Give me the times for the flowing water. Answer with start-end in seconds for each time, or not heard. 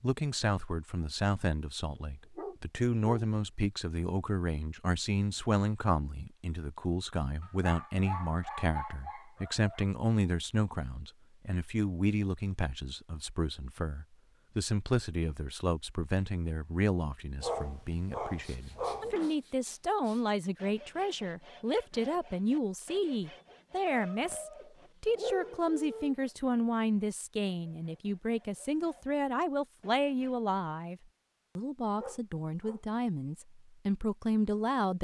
not heard.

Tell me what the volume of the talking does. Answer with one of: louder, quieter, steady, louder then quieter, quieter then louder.
steady.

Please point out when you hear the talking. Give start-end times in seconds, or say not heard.
0.0-34.9.